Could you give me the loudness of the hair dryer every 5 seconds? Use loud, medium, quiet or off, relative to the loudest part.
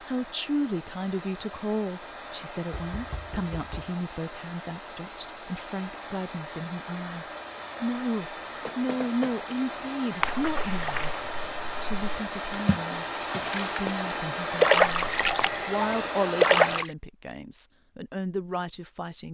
medium, medium, loud, loud.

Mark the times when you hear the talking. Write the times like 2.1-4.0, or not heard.
0.0-11.1, 11.8-19.2.